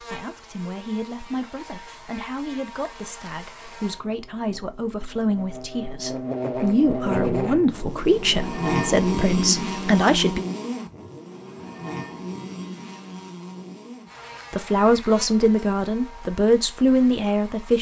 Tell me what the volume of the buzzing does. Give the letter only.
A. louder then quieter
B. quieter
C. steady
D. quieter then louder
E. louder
A.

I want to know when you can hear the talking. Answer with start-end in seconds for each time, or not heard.
0.0-10.4, 14.5-17.7.